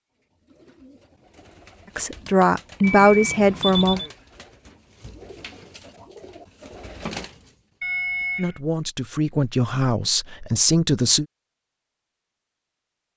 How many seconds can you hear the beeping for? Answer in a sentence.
You can hear the beeping for 2 seconds altogether.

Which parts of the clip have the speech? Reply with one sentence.
The speech can be heard from 1.9 to 4.0 s and from 8.3 to 11.2 s.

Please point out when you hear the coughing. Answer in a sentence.
The coughing can't be heard in this clip.